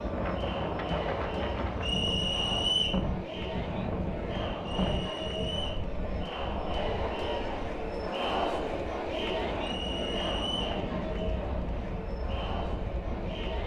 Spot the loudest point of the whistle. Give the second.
3 s.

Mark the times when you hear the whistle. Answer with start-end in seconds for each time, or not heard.
1.8-3.0, 4.7-5.8, 9.6-10.8.